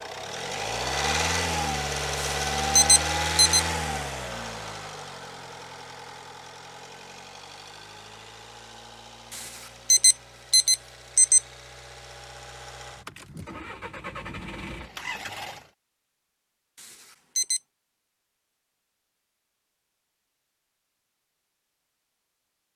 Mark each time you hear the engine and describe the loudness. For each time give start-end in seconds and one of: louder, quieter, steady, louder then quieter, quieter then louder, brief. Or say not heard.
0.0-15.7 quieter then louder.